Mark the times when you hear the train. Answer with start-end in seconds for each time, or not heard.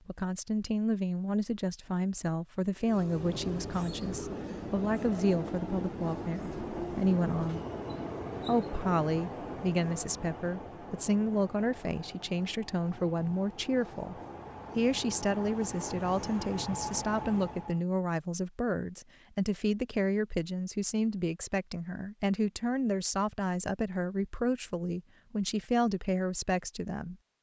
2.8-17.9.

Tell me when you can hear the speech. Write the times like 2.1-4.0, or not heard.
0.1-7.7, 8.4-14.2, 14.8-27.1.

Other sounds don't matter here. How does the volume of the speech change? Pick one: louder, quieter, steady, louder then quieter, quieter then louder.
steady.